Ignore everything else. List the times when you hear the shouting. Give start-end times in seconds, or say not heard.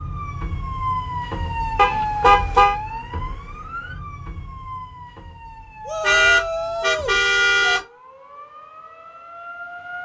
5.8-7.8.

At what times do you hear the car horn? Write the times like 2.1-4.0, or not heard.
1.8-2.8, 6.0-7.8.